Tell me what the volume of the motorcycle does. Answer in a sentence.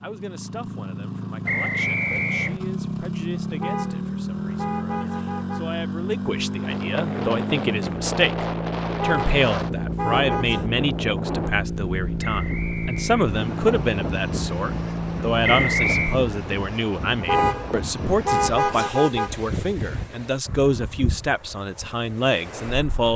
The volume of the motorcycle stays about the same.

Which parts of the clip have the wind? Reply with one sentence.
The wind can be heard from 6.6 to 23.1 s.